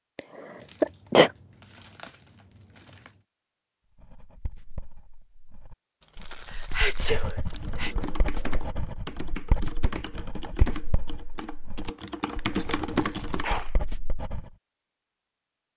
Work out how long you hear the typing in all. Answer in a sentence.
You can hear the typing for 6 seconds altogether.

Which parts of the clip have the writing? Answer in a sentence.
You can hear the writing from 4.0 to 14.5 s.